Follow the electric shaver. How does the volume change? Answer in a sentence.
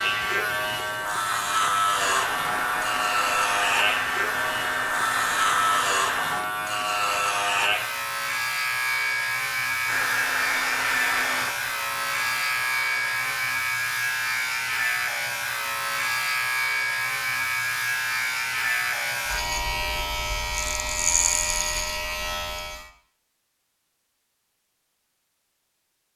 The loudness of the electric shaver stays about the same.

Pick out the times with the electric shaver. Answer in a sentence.
You can hear the electric shaver from 0.0 to 22.9 s.